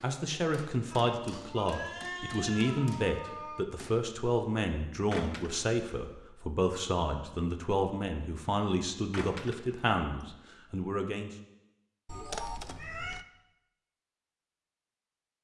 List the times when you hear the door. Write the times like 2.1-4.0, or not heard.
5.1-5.6, 9.1-9.9.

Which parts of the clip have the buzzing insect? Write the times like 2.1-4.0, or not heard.
not heard.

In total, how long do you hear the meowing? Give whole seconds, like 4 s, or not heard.
4 s.